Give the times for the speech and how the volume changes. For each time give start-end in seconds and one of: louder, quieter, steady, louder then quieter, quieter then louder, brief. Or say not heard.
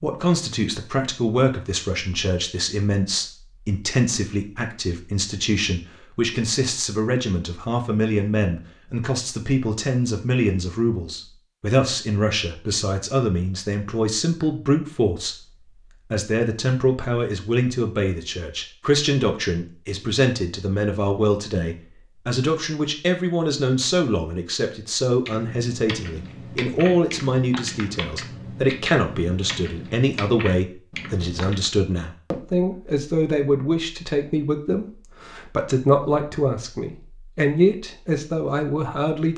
0.0-15.3 steady
16.1-39.3 steady.